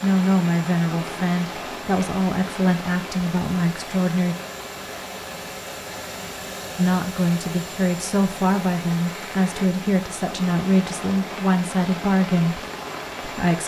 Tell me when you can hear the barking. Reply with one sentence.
You can't hear the barking here.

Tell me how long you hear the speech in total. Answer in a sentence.
The speech can be heard for 11 seconds in total.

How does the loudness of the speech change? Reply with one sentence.
The volume of the speech stays about the same.